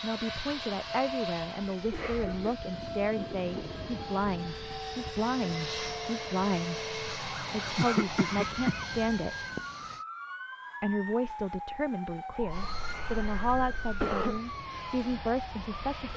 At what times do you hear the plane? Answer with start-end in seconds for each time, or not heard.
0.0-10.1, 12.4-16.1.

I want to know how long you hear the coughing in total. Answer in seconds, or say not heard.
4 s.